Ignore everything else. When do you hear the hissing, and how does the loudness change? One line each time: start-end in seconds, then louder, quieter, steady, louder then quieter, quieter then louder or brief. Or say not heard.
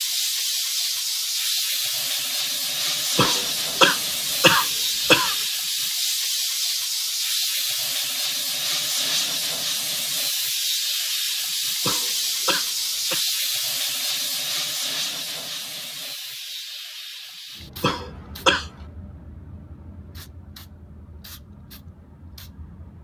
0.0-22.9 quieter.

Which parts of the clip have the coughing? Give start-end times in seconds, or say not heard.
3.1-5.4, 11.8-13.2, 17.8-18.7.